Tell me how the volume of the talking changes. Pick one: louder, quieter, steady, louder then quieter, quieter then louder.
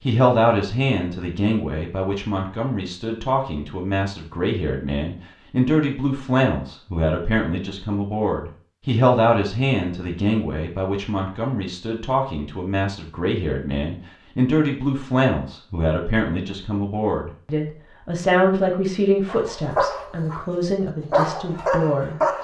steady.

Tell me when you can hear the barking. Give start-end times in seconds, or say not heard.
19.2-20.4, 21.1-22.3.